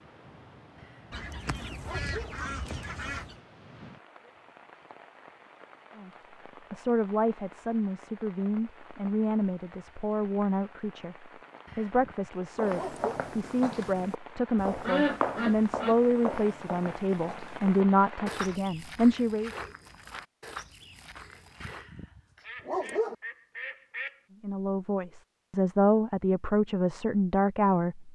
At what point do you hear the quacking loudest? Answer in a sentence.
The volume of the quacking peaks at 15 seconds.